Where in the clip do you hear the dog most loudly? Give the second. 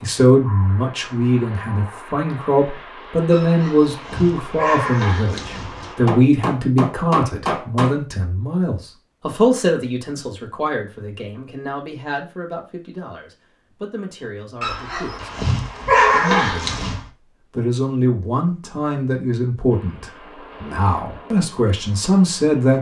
16 s.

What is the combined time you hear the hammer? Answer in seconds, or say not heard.
2 s.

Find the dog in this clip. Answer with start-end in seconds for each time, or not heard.
3.3-6.0, 14.6-17.1.